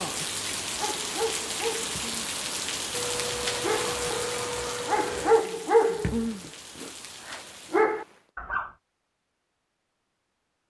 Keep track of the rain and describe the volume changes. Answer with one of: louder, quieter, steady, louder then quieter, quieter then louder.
quieter.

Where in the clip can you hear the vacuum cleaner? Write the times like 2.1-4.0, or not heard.
2.9-5.4.